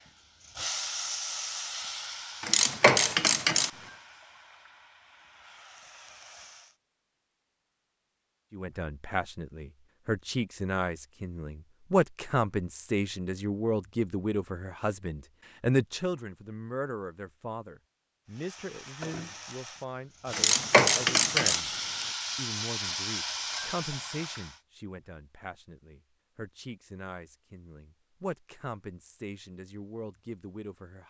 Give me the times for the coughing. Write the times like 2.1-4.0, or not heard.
not heard.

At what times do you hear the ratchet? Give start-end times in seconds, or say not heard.
2.4-3.7, 20.3-22.1.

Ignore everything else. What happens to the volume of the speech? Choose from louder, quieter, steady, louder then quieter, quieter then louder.
quieter.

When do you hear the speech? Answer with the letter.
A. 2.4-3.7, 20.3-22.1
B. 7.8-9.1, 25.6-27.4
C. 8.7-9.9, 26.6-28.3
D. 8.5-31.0
D.